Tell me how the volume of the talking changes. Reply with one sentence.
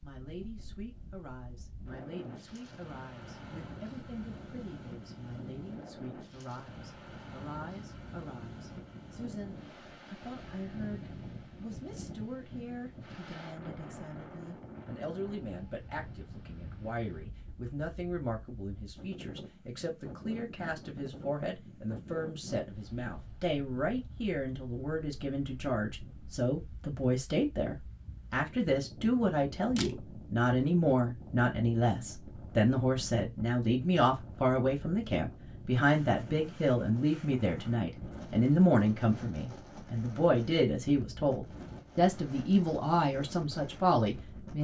The volume of the talking goes up.